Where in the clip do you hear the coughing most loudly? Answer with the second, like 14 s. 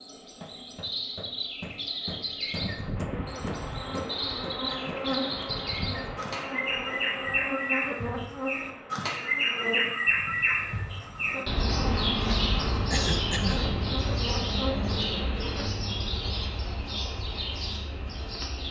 13 s.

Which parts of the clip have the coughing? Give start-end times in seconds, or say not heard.
4.7-5.4, 12.9-13.7.